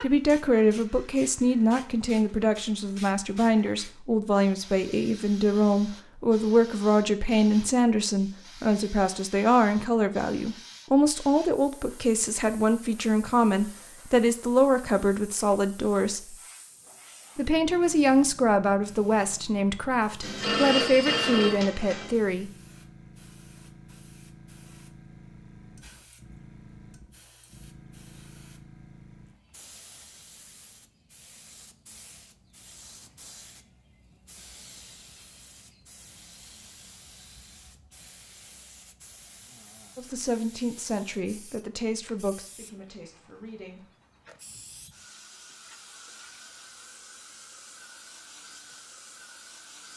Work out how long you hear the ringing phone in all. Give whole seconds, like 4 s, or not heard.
2 s.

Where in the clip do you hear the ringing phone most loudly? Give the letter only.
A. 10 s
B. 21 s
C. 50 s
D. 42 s
B.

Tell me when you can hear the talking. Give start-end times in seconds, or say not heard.
0.0-16.4, 17.4-22.5, 40.0-43.9.